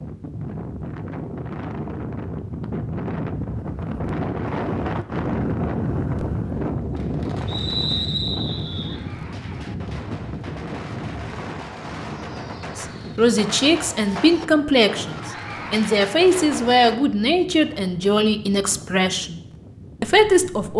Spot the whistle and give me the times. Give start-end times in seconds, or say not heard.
7.5-9.0.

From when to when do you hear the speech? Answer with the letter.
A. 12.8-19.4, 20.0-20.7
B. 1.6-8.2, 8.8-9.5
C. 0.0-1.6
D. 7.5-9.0
A.